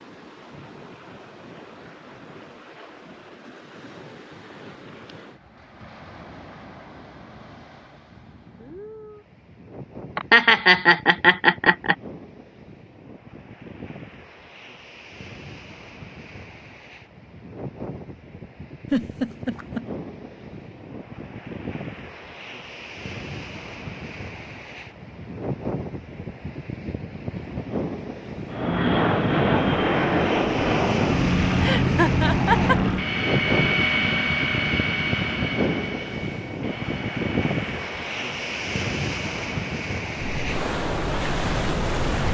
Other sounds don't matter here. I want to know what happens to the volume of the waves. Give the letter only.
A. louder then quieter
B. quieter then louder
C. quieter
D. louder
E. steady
D.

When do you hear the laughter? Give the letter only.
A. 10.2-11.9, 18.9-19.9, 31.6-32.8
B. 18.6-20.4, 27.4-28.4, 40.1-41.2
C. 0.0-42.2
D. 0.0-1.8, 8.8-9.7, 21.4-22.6
A.